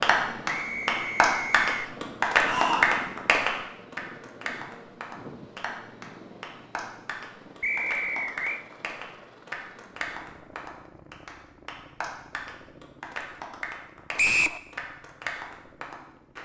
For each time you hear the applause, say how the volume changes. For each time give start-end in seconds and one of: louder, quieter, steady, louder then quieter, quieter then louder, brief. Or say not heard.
0.0-16.4 quieter.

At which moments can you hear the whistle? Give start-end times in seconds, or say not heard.
0.5-1.7, 7.6-8.6, 14.2-14.6.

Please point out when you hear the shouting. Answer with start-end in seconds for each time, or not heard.
2.4-3.0.